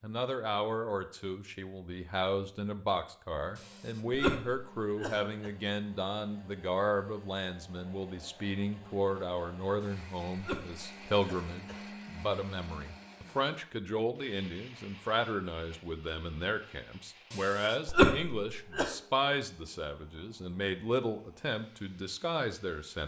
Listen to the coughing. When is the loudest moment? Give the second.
18 s.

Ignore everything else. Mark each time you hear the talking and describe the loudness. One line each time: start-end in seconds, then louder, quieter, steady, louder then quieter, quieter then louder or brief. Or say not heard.
0.0-23.0 steady.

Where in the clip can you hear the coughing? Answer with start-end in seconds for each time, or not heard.
3.5-5.5, 9.8-11.8, 17.3-18.9.